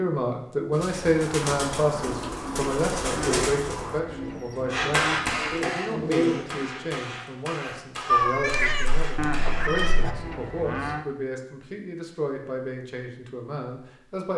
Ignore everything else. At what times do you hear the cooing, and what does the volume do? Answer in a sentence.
You can hear the cooing from 0.7 to 6.9 s, getting quieter then louder.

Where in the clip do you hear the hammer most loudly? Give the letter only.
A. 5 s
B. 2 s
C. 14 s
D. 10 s
A.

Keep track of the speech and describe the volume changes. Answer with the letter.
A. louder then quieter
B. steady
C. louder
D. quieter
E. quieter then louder
D.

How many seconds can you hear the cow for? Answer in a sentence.
You can hear the cow for 4 seconds altogether.